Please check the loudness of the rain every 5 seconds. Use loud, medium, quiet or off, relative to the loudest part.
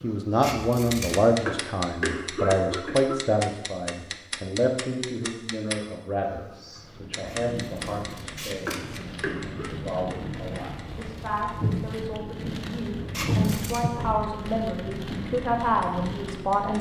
off, medium, loud, loud.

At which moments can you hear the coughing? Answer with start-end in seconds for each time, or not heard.
1.4-3.4, 8.7-9.8.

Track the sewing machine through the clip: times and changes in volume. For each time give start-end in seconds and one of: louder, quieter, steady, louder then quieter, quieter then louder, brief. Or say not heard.
not heard.